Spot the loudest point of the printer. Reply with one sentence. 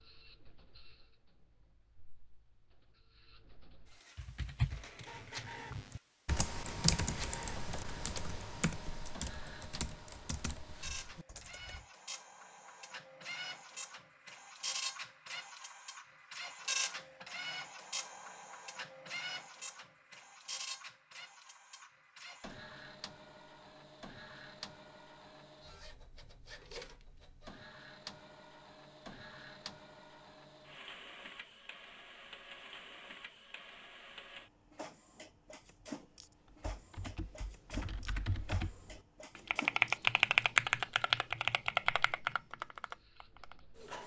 The volume of the printer peaks at 17 seconds.